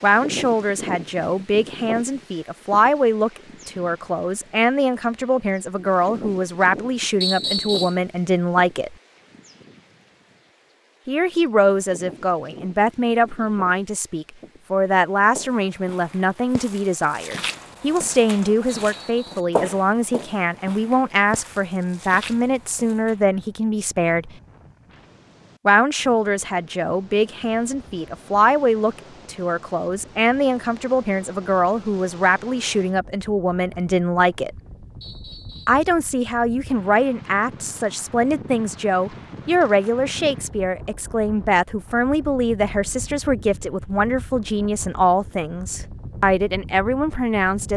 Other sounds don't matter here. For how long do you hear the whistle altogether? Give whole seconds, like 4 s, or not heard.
2 s.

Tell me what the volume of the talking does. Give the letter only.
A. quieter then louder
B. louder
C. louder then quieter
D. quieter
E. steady
E.